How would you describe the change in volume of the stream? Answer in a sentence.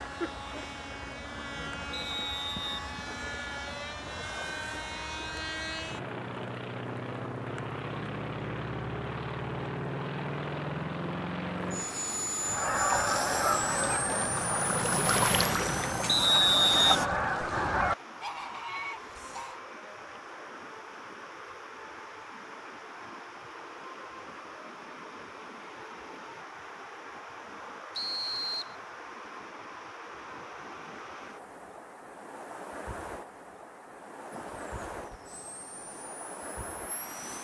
The volume of the stream goes up, then down.